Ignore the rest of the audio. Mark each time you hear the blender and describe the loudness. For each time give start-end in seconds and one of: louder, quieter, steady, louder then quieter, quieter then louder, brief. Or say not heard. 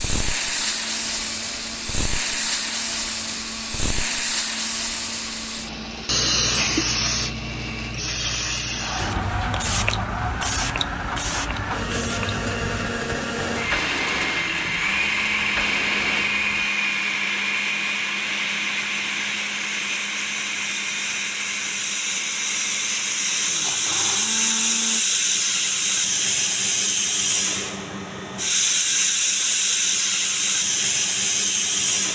0.0-25.1 louder then quieter.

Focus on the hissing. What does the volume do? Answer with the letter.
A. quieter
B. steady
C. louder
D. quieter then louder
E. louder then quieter
D.